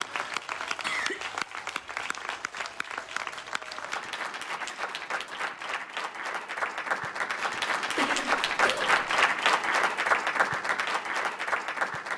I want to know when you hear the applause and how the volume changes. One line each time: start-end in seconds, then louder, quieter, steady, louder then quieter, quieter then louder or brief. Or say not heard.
0.0-12.1 louder.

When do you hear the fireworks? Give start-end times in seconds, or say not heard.
not heard.